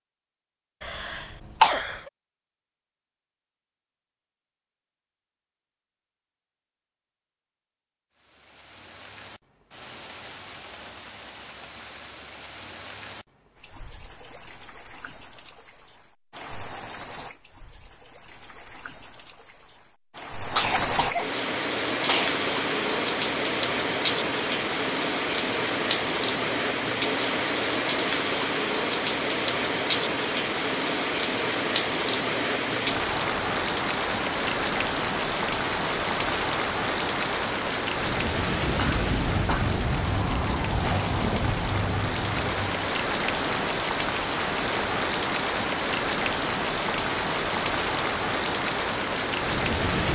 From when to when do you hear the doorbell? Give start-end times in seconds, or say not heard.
not heard.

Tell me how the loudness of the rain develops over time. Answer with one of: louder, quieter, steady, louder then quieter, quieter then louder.
louder.